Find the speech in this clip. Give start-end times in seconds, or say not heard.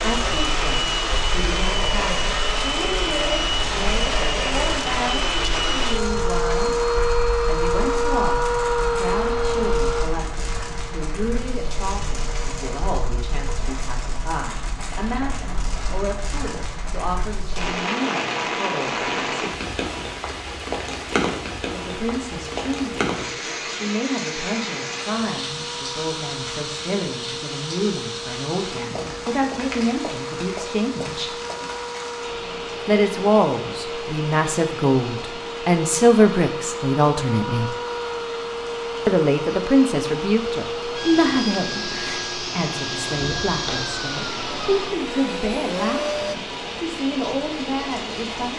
0.0-19.4, 21.7-31.4, 32.9-37.8, 39.0-48.5.